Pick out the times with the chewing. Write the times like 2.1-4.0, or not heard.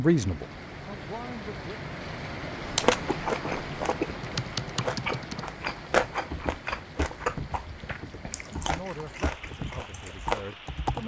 2.8-10.6.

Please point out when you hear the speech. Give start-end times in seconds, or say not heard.
0.0-1.8, 8.4-11.0.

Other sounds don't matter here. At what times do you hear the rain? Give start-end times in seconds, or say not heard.
0.0-11.0.